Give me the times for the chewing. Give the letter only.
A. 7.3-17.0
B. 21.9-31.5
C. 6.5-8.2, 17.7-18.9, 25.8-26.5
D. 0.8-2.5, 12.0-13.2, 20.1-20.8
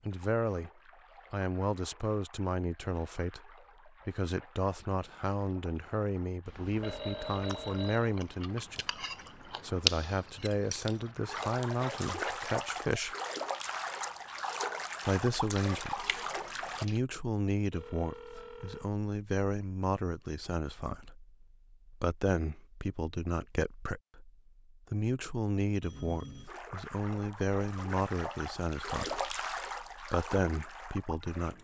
A.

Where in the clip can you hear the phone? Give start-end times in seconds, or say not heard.
6.5-8.2, 17.7-18.9, 25.8-26.5.